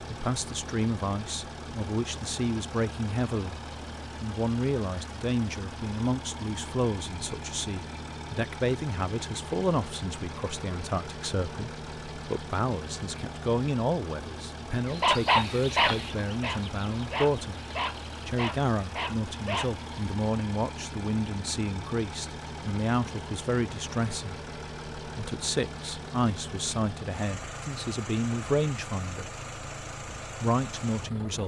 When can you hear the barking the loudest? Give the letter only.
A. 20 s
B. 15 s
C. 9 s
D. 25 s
B.